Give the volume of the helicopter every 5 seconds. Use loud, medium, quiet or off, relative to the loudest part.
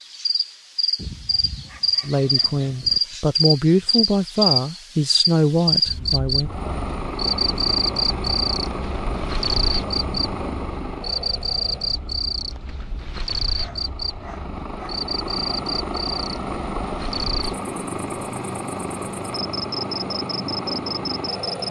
off, loud, medium, loud, loud.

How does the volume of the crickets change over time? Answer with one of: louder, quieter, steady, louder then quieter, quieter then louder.
quieter.